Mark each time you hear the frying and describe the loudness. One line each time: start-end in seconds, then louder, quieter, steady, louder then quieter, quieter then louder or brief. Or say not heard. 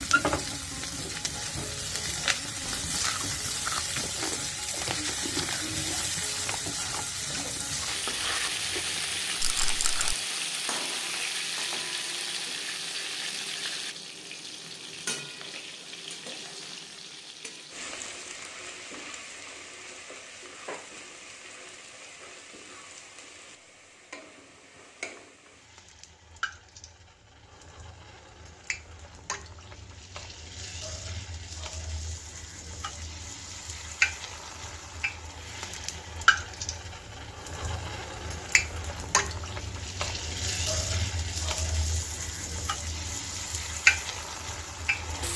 0.0-45.3 quieter then louder.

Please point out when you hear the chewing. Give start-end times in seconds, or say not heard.
2.6-10.2.